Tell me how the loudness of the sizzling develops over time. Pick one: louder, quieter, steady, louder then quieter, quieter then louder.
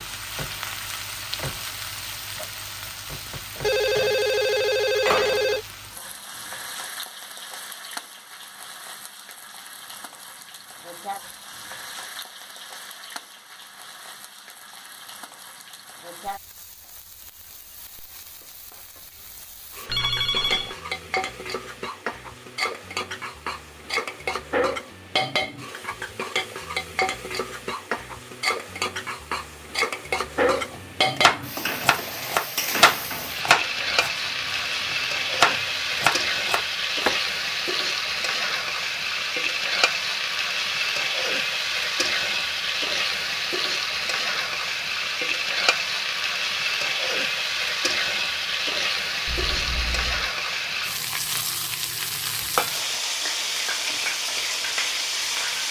louder.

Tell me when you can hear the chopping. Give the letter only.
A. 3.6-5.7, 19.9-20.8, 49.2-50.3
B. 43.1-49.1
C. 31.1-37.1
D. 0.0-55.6
C.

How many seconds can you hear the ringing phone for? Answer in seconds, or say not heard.
4 s.